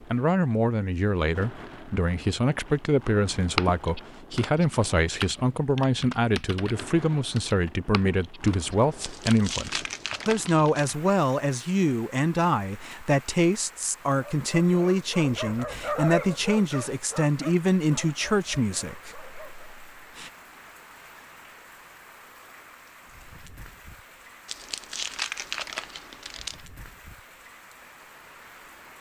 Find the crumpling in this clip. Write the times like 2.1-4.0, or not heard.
9.0-10.9, 24.4-26.6.